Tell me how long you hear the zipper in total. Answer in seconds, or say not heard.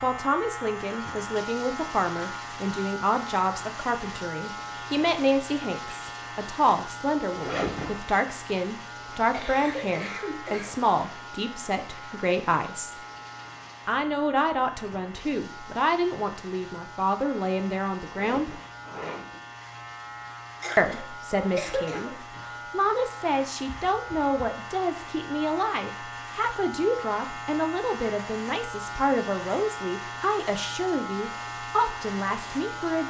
3 s.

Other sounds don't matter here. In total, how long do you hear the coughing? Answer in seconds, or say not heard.
3 s.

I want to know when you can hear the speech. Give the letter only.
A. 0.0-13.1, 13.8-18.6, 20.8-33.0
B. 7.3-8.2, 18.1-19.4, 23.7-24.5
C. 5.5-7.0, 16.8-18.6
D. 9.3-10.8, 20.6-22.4
A.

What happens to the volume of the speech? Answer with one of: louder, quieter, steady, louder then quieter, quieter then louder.
steady.